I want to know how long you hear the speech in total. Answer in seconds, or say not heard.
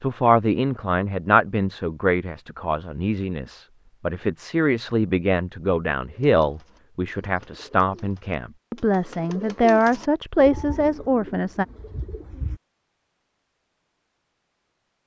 12 s.